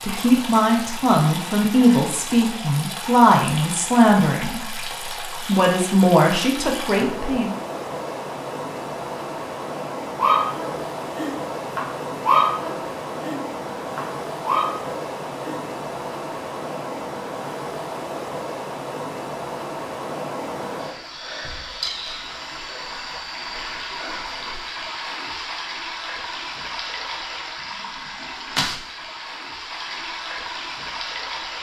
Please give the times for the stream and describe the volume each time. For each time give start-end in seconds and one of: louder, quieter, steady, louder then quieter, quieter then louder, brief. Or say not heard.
0.0-31.5 steady.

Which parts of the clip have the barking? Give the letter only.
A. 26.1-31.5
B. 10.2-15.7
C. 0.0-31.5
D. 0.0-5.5
B.